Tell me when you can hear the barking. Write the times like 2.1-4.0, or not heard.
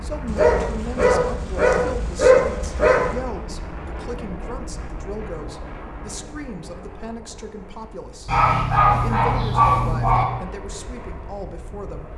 0.2-3.1, 8.2-10.2.